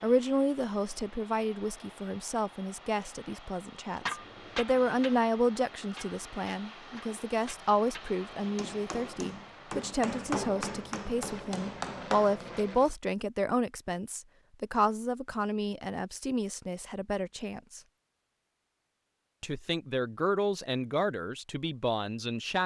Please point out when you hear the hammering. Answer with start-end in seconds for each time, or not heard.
4.0-12.4.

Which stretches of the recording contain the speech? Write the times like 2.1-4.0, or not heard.
0.0-17.8, 19.4-22.6.